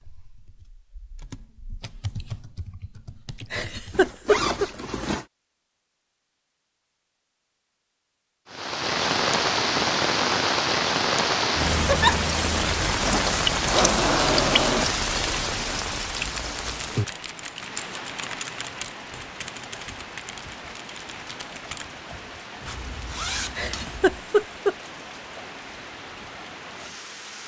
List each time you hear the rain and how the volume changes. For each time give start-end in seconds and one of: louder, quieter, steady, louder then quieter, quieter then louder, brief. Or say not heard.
8.4-27.4 quieter.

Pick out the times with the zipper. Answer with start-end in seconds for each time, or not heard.
3.8-5.2, 13.0-14.9, 22.6-24.1.